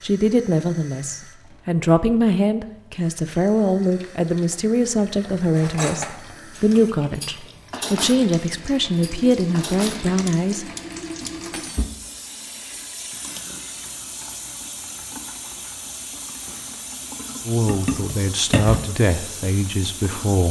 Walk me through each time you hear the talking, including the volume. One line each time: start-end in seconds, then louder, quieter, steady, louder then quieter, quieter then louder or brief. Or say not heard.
0.0-10.7 steady
17.4-20.4 brief.